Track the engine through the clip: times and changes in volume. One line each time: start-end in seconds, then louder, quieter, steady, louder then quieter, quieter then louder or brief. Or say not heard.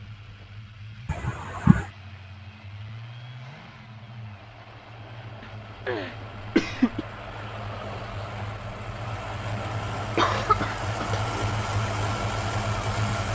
0.0-13.3 louder.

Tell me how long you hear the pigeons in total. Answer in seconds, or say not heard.
not heard.